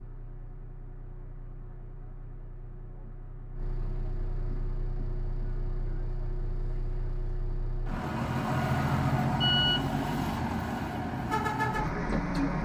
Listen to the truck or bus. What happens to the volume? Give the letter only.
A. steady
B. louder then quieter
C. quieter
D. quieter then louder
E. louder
E.